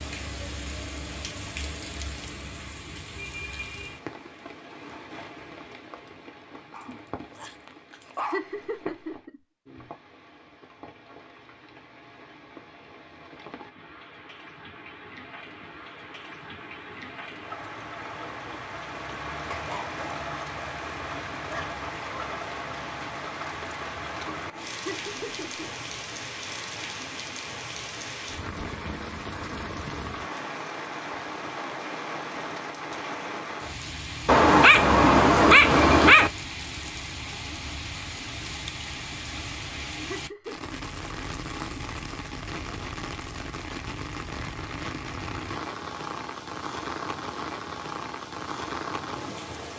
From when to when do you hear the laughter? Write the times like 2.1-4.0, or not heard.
8.2-9.8, 24.8-25.9, 40.0-40.7.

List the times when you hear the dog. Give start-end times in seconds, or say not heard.
6.7-8.4, 19.5-22.3, 34.2-36.3.